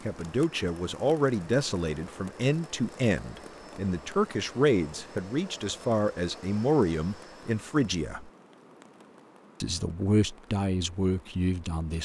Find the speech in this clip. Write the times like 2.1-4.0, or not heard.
0.1-8.3, 9.6-12.0.